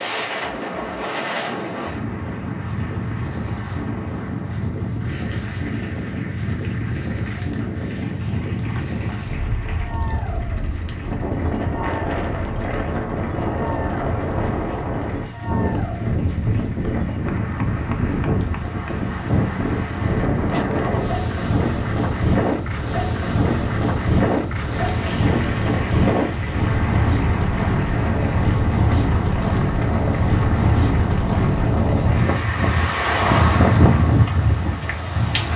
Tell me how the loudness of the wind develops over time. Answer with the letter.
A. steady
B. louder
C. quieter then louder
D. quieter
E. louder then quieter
B.